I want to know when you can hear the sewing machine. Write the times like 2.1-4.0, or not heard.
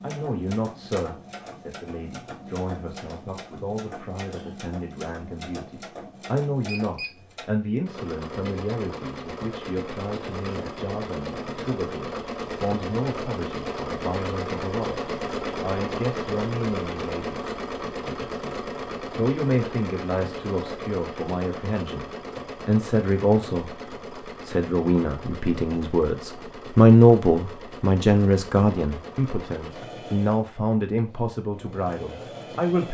0.0-32.8.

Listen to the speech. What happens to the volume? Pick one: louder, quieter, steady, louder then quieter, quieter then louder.
louder.